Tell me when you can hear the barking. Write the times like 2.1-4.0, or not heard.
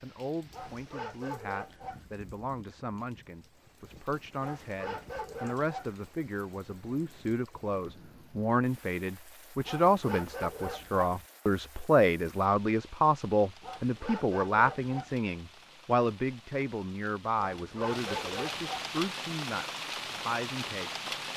0.5-2.0, 4.4-6.0, 9.7-11.2, 13.6-15.2, 17.4-18.9.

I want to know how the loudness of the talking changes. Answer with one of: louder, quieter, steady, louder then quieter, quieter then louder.
louder then quieter.